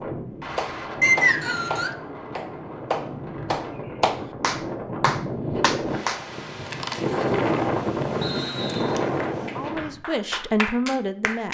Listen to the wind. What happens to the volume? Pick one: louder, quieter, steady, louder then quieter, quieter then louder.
louder.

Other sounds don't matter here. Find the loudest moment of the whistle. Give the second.
1 s.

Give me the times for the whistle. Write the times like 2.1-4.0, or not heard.
1.0-1.9, 8.2-9.0.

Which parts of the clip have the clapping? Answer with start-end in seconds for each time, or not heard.
0.6-6.2, 9.2-11.4.